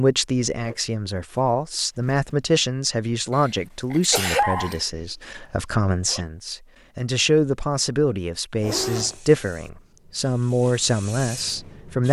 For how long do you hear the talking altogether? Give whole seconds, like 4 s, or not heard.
12 s.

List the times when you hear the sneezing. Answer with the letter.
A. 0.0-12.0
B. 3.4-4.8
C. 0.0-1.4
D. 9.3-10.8
B.